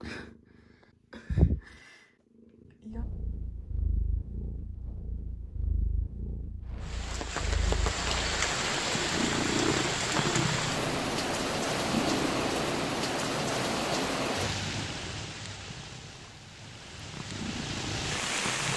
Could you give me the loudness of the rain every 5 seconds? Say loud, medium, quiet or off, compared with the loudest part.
off, loud, loud, medium.